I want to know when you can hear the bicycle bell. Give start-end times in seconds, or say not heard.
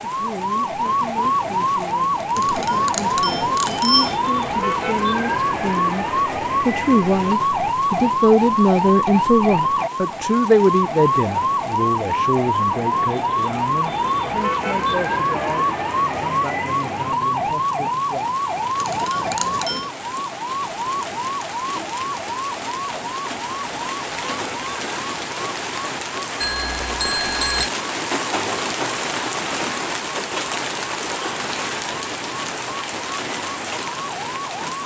2.4-4.2, 18.8-19.9, 26.4-27.7.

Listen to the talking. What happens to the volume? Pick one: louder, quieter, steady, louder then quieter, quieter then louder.
louder then quieter.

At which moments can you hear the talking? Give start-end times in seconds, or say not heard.
0.0-18.2.